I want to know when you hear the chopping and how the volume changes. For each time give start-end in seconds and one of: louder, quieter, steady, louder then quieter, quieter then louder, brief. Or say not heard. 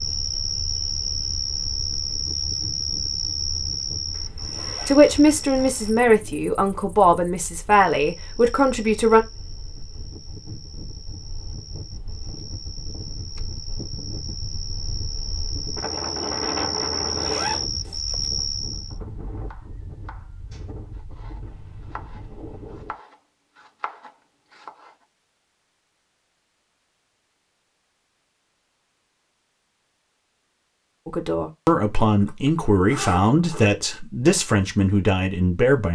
18.9-24.9 louder.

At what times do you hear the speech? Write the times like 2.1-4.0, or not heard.
4.8-9.2, 31.1-35.8.